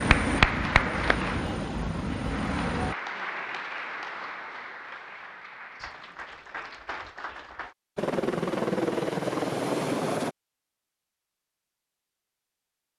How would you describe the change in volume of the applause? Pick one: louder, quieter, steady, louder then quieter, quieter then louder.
quieter.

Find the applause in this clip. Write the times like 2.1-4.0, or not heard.
0.0-7.8.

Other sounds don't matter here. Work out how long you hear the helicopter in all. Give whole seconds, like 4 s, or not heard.
5 s.